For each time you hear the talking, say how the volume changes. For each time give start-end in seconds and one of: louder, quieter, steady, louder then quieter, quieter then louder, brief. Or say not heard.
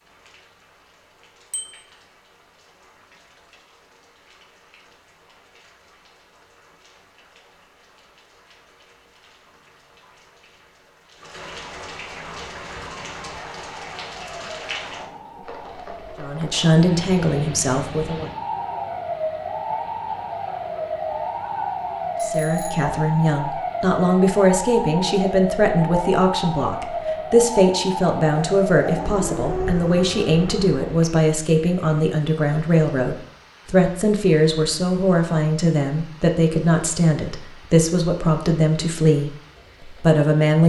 16.2-18.3 brief
22.2-40.6 steady.